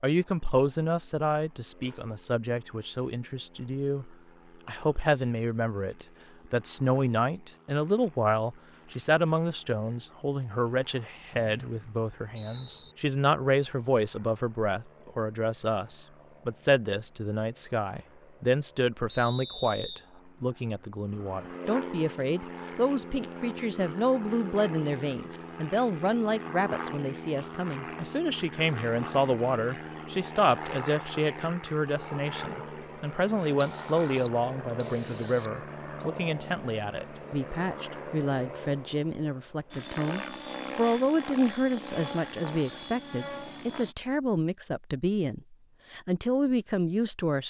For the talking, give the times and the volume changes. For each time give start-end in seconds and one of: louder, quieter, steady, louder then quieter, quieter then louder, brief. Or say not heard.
0.0-47.4 steady.